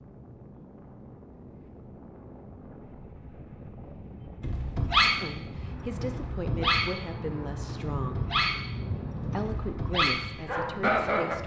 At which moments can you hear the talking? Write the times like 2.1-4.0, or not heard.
5.2-8.2, 9.2-11.4.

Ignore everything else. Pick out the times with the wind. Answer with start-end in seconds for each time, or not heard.
0.0-11.4.